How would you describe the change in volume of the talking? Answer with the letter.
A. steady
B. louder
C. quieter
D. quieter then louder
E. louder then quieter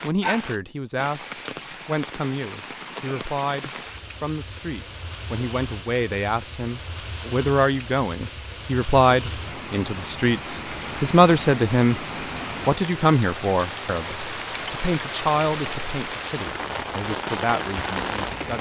E.